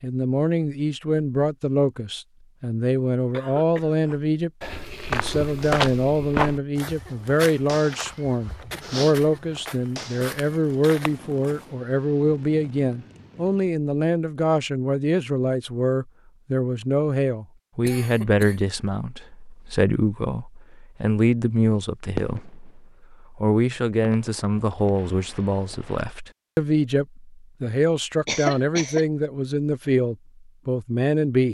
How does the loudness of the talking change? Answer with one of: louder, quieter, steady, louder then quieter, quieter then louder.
steady.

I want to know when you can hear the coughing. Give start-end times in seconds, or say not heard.
3.3-4.2, 17.9-18.6, 28.2-29.1.